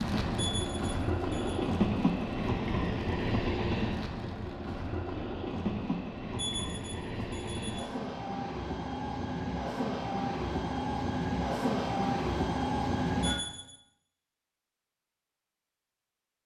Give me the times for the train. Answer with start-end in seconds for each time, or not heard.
0.0-13.4.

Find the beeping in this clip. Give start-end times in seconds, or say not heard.
0.3-1.6, 6.3-7.9, 13.2-13.8.